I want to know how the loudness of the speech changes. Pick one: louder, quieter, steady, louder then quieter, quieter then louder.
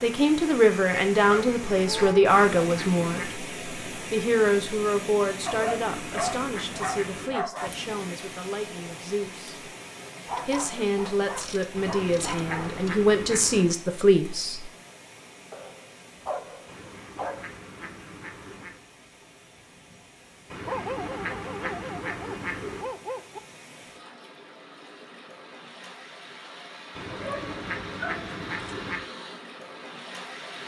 quieter then louder.